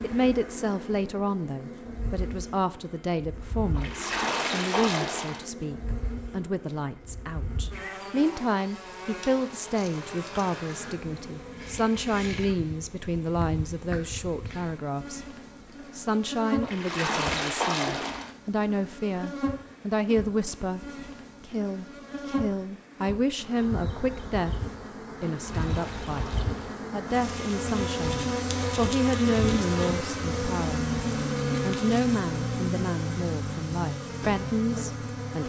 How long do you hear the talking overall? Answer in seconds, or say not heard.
33 s.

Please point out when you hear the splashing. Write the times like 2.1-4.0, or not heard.
3.8-5.5, 16.6-18.3, 25.4-26.8.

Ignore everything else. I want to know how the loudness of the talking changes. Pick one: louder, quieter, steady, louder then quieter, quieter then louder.
steady.